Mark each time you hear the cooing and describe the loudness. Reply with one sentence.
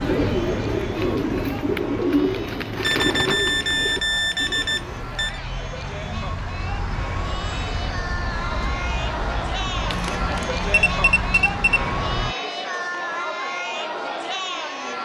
You can hear the cooing from 0.0 to 5.2 s, getting quieter.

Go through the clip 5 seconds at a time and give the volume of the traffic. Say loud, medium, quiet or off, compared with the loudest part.
medium, loud, loud.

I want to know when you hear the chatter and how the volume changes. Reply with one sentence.
The chatter can be heard from 0.0 to 15.0 s, getting louder.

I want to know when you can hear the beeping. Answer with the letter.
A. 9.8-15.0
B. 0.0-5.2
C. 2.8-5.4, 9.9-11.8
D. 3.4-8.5
C.